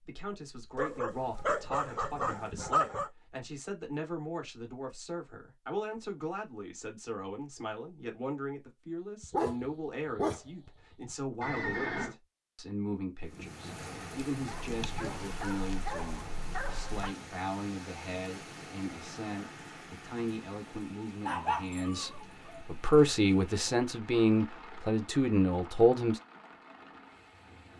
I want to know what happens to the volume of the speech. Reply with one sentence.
The loudness of the speech goes up.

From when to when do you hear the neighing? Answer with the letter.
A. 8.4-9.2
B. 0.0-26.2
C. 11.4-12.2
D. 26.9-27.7
C.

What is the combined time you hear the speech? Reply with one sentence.
The speech can be heard for 26 seconds in total.